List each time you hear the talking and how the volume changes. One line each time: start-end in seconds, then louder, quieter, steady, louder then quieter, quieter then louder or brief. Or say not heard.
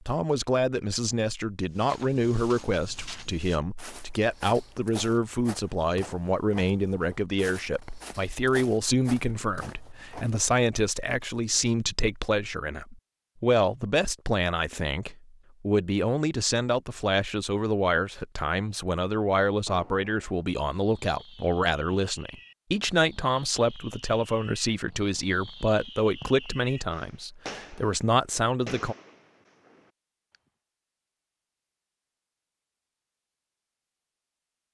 0.1-28.9 steady.